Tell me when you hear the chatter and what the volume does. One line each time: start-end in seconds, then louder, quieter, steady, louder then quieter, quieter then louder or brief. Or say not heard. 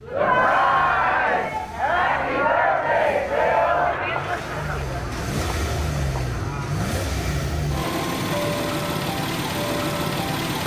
0.0-7.0 quieter.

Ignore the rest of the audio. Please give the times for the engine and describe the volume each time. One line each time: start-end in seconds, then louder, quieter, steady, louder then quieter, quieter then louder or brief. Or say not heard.
0.0-10.6 louder.